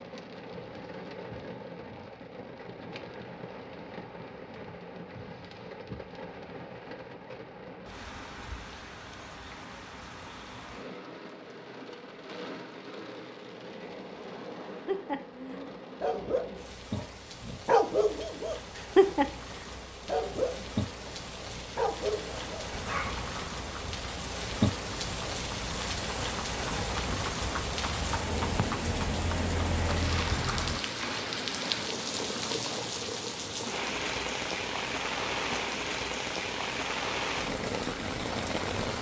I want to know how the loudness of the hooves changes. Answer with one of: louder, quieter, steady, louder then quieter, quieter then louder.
louder.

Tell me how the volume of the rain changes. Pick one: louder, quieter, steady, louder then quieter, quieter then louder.
louder.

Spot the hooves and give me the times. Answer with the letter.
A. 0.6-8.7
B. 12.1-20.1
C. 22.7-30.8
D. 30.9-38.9
C.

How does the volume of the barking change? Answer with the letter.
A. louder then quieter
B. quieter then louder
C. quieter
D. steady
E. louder
A.